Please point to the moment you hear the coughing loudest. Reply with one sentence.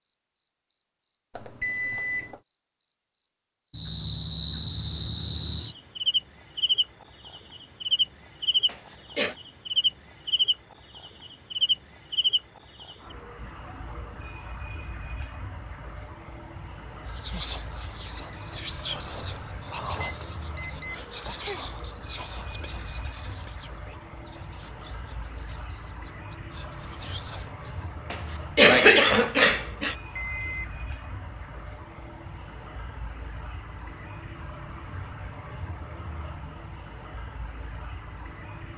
The loudest moment of the coughing is at 29 seconds.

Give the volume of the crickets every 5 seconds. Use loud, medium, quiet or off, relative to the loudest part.
loud, loud, loud, medium, medium, medium, medium, medium.